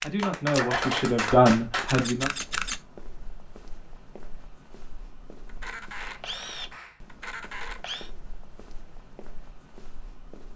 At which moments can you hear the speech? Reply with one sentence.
You can hear the speech from 0.0 to 2.3 s.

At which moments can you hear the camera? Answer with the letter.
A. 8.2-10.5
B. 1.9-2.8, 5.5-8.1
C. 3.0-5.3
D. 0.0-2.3
B.